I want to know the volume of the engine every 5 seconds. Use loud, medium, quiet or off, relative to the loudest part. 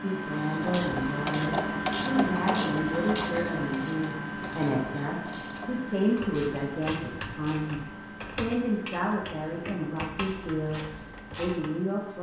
loud, medium, quiet.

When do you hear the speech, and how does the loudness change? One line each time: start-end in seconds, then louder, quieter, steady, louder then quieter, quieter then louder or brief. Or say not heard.
0.0-12.1 steady.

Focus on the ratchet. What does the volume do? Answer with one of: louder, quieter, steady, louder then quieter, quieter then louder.
quieter.